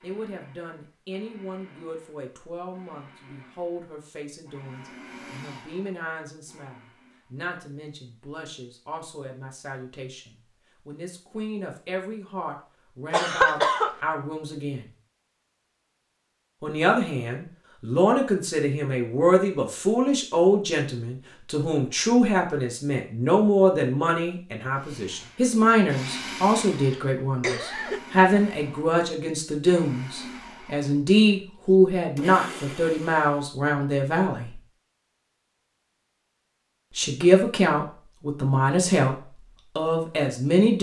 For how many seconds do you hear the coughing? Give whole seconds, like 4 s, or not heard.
2 s.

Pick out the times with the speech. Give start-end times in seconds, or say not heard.
0.0-14.9, 16.6-34.6, 37.0-39.1, 39.8-40.7.